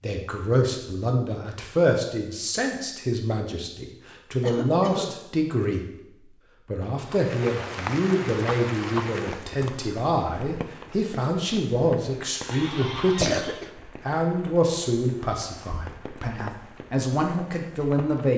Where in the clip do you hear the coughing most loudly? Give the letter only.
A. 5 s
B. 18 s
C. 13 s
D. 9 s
C.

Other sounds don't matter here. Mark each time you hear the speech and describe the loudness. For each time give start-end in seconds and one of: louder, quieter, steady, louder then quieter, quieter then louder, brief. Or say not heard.
0.0-18.3 steady.